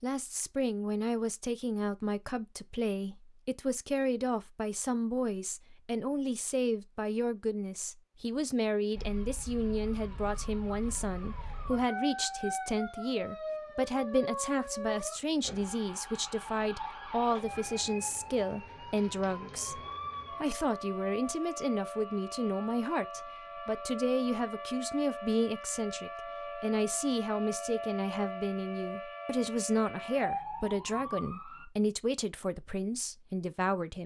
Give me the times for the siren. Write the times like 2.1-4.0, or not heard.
8.9-31.6.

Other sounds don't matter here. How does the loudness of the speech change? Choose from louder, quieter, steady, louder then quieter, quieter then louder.
steady.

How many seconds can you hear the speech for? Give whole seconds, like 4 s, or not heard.
34 s.